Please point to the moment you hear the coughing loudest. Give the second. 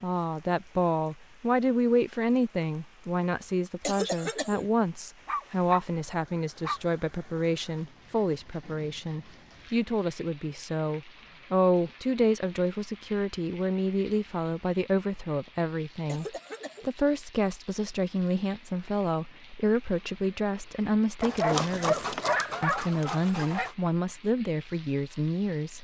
4 s.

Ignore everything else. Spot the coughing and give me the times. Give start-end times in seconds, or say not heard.
3.8-4.7, 16.1-16.9.